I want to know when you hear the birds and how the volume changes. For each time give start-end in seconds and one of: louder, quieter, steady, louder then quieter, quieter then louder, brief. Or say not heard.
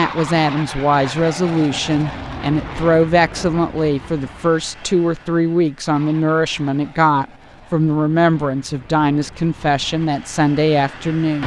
not heard.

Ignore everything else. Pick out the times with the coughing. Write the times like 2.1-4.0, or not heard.
not heard.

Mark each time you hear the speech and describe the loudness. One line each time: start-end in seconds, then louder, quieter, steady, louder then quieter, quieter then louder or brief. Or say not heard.
0.0-11.4 steady.